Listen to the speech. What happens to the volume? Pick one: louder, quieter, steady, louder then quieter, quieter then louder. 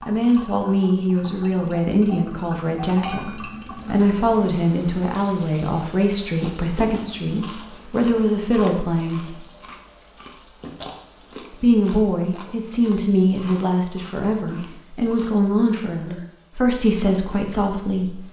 steady.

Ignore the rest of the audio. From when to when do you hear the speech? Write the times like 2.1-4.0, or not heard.
0.1-9.3, 11.6-18.2.